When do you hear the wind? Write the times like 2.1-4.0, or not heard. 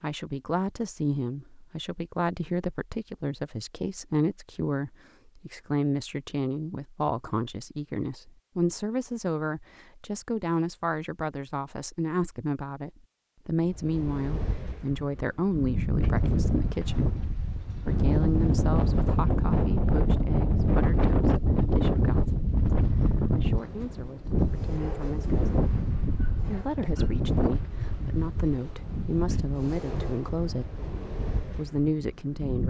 13.7-32.6.